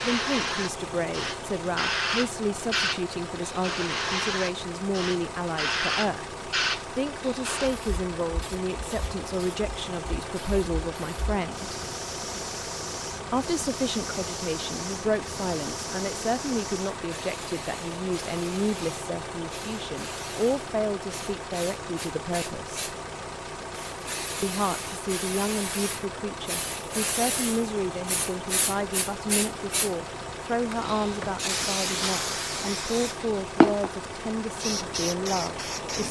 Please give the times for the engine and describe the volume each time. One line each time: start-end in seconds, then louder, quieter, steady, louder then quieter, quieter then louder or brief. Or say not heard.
0.0-36.0 steady.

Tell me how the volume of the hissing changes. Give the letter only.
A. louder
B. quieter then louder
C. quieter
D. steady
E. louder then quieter
B.